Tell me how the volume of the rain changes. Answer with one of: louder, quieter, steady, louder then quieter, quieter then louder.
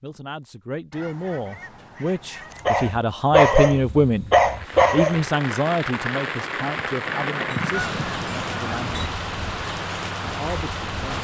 steady.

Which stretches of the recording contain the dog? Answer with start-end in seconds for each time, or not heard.
2.6-5.2.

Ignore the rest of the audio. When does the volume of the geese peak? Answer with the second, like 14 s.
8 s.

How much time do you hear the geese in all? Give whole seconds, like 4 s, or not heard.
4 s.